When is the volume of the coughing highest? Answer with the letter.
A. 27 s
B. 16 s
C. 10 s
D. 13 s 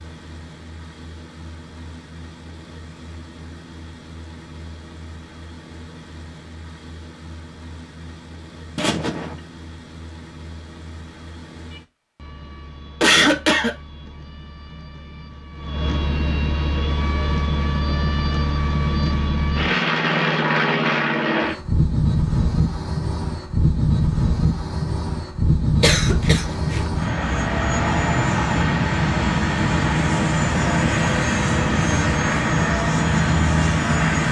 D.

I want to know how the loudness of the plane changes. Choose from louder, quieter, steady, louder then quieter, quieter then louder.
louder.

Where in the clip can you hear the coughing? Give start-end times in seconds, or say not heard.
8.8-9.3, 13.0-13.8, 25.8-27.0.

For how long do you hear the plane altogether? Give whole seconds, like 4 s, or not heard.
34 s.